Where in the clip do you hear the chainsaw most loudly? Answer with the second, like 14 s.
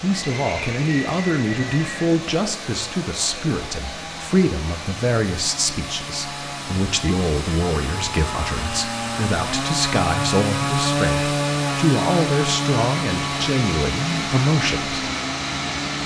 11 s.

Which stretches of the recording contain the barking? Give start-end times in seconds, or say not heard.
not heard.